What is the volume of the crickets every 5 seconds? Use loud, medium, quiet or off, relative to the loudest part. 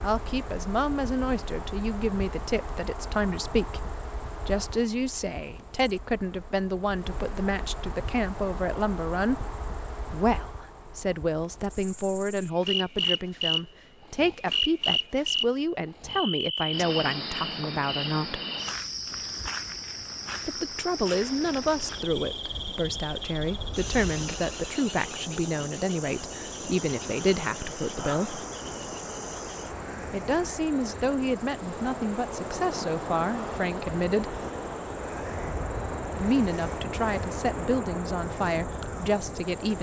medium, medium, loud, loud, medium, medium, quiet, quiet.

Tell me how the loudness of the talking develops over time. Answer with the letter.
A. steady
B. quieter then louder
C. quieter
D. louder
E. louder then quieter
A.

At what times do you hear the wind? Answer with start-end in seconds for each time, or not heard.
19.1-39.7.